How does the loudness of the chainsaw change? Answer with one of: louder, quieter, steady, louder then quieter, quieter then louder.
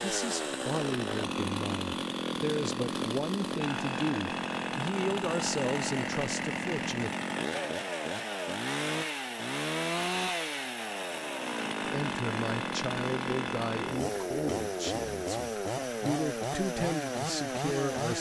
steady.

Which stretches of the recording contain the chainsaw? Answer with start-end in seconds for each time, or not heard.
0.0-18.1.